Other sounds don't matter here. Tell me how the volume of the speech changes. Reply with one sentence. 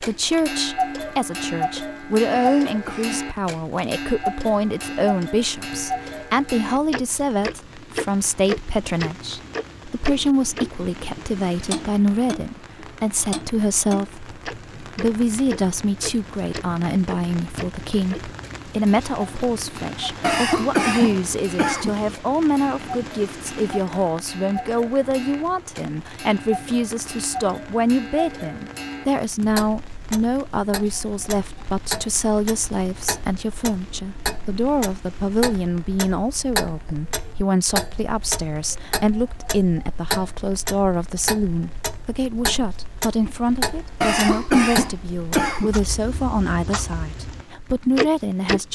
The volume of the speech stays about the same.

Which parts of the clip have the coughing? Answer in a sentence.
You can hear the coughing from 2.4 to 3.2 s, from 20.2 to 21.9 s and from 44.0 to 45.8 s.